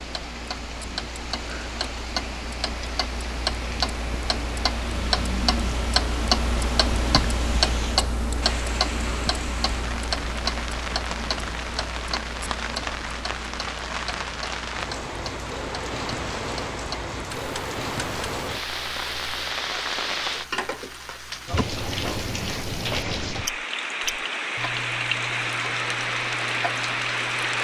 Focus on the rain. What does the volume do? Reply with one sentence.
The loudness of the rain goes up.